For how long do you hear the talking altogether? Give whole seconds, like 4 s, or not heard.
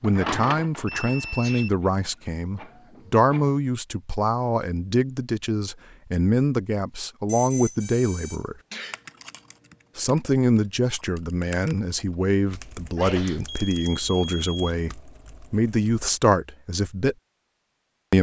16 s.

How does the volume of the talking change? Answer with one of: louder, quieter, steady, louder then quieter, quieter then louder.
steady.